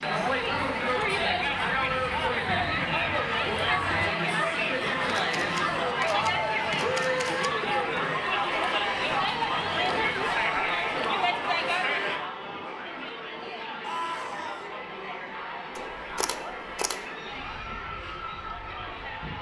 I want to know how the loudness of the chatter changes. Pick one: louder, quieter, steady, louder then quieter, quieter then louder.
quieter.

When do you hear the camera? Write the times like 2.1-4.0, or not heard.
5.0-7.5, 15.8-17.1.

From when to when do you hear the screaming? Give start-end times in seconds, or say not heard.
13.8-14.7.